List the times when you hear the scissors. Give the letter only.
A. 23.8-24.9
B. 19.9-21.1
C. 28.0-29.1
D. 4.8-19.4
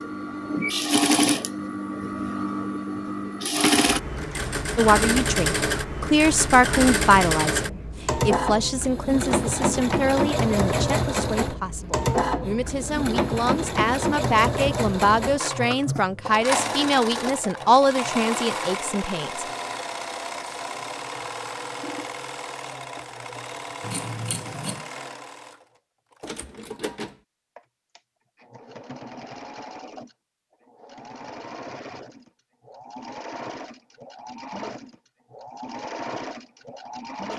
A.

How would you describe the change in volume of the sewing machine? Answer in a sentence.
The loudness of the sewing machine goes down.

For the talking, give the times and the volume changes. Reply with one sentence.
The talking can be heard from 4.8 to 19.4 s, getting quieter then louder.